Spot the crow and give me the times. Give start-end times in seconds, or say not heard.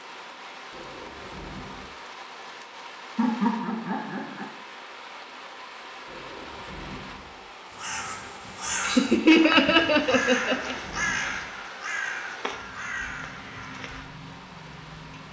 7.7-14.1.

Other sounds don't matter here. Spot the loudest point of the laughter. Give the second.
9 s.